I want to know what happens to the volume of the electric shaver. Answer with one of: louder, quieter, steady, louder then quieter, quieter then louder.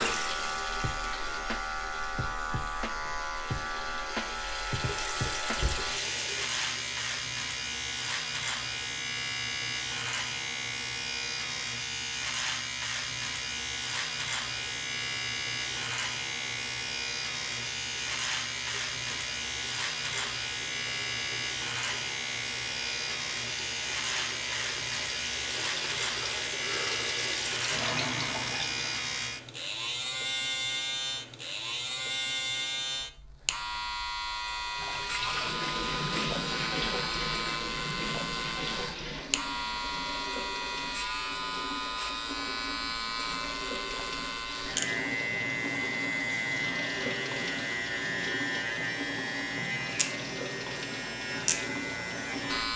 steady.